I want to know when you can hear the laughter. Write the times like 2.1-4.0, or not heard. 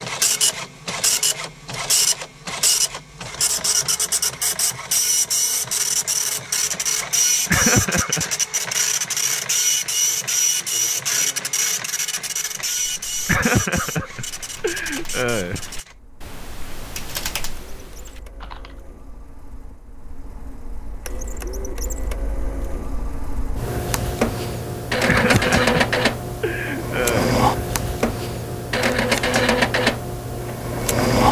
7.5-8.3, 13.2-15.6, 25.1-27.4.